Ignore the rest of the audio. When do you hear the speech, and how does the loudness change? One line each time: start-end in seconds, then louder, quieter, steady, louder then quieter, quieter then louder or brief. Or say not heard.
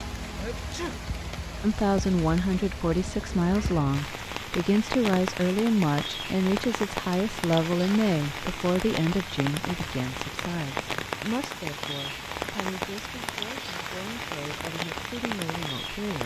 1.6-16.2 quieter.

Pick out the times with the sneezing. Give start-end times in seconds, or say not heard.
0.3-1.0.